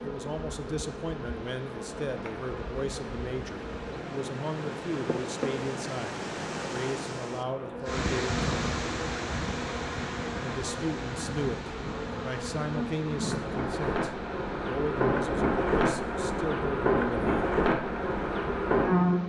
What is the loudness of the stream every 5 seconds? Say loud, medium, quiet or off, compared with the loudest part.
medium, loud, medium, quiet.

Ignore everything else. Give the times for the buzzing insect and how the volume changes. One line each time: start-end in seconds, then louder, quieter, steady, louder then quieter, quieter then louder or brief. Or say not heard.
0.0-19.2 louder.